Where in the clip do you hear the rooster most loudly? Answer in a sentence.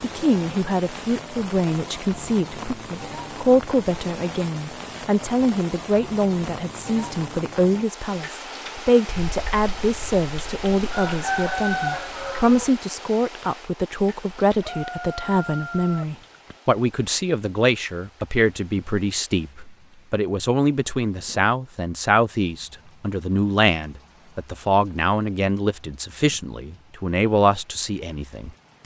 The volume of the rooster peaks at 12 seconds.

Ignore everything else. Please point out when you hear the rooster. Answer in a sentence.
You can hear the rooster from 9.1 to 12.7 s and from 14.6 to 16.6 s.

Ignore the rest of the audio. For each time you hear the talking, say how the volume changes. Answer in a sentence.
The talking can be heard from 0.0 to 28.5 s, at a steady volume.